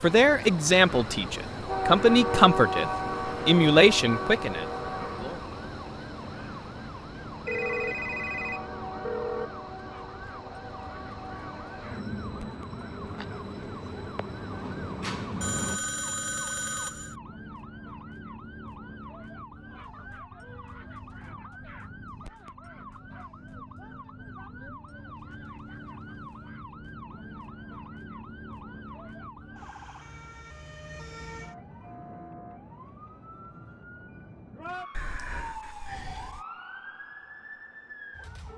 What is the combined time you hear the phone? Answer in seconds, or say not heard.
5 s.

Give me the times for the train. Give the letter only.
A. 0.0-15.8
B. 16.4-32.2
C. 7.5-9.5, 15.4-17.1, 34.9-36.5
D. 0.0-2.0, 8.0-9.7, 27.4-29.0
A.